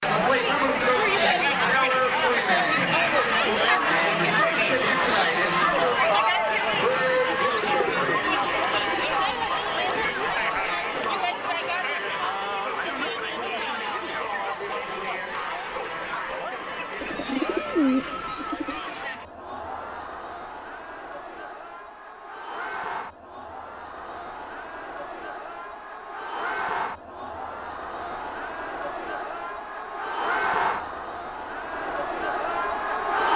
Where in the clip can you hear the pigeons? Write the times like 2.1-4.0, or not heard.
7.7-9.5, 17.0-18.8.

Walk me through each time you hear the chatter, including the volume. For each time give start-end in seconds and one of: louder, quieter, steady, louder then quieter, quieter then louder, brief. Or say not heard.
0.0-33.3 quieter then louder.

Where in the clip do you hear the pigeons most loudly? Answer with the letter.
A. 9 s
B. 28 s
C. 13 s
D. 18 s
D.